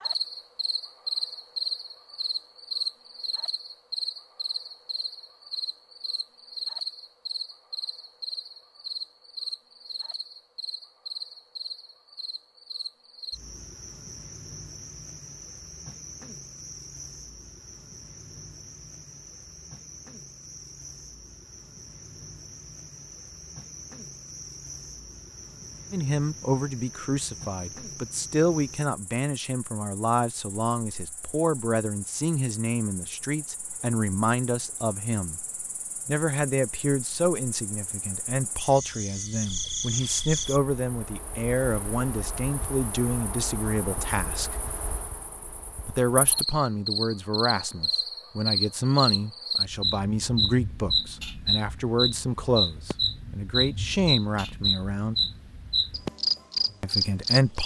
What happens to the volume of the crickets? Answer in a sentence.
The loudness of the crickets goes down, then up.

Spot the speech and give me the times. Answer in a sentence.
The speech can be heard from 25.9 to 35.4 s, from 36.0 to 44.5 s, from 45.9 to 55.1 s and from 56.8 to 57.6 s.